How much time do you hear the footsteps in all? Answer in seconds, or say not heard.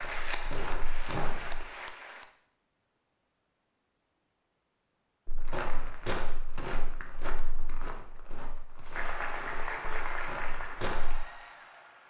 8 s.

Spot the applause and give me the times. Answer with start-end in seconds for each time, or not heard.
0.0-2.3, 8.8-12.0.